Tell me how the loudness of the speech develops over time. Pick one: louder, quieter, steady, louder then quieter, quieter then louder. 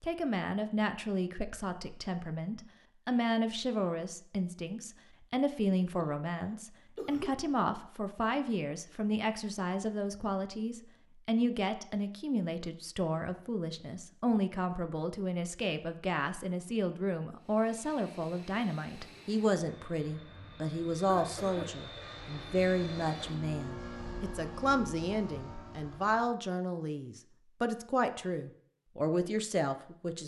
steady.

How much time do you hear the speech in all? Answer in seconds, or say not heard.
30 s.